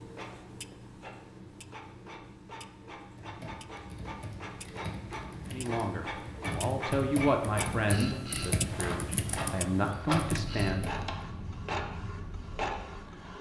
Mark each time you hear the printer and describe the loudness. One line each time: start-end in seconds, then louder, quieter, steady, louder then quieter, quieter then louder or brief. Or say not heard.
0.0-13.3 louder.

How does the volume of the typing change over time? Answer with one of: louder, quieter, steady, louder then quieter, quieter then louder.
louder.